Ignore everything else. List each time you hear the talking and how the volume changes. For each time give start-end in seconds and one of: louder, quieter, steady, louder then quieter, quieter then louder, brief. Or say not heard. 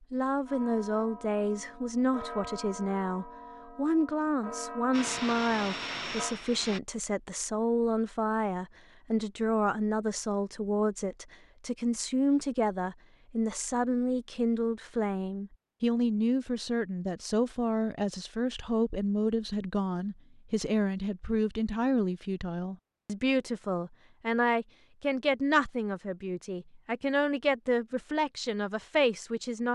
0.1-29.7 steady.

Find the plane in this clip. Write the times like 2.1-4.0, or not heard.
4.9-6.8.